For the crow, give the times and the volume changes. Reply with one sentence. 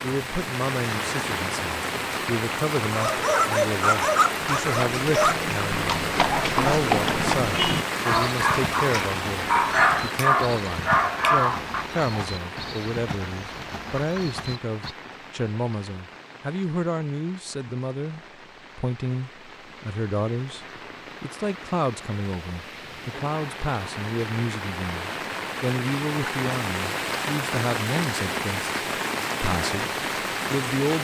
You can't hear the crow here.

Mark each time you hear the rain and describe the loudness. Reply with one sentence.
The rain can be heard from 0.0 to 31.0 s, getting quieter then louder.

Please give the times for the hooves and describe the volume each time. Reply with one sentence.
You can hear the hooves from 4.7 to 14.9 s, getting quieter.